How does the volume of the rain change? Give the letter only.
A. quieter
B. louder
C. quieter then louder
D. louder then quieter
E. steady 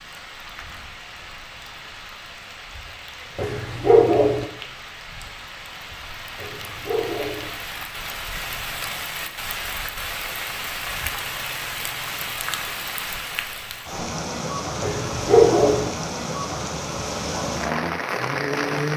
B.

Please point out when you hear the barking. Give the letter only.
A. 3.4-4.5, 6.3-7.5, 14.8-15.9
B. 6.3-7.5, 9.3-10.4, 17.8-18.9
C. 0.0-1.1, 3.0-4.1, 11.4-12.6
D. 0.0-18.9
A.